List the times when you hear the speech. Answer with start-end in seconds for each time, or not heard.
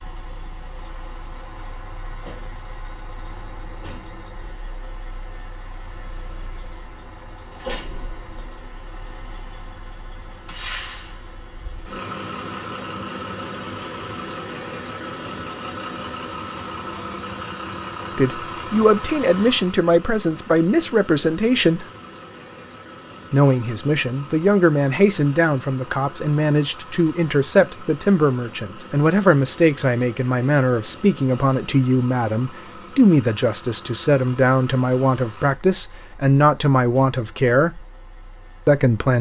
18.1-21.9, 23.3-37.8, 38.6-39.1.